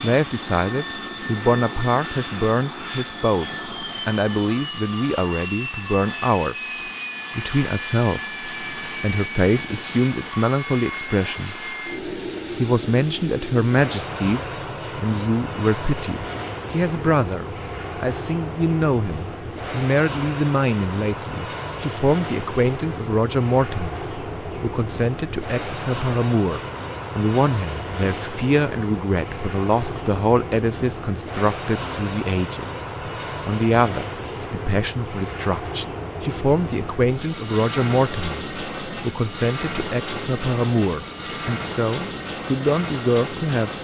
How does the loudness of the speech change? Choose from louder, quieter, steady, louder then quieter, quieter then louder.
steady.